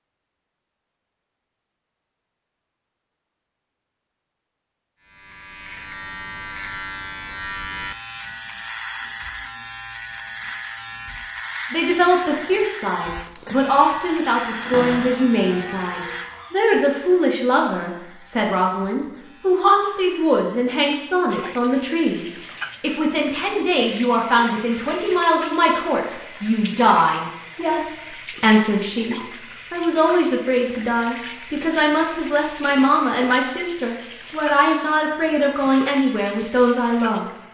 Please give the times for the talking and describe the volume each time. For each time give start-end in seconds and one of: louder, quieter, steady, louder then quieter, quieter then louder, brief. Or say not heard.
11.7-37.3 steady.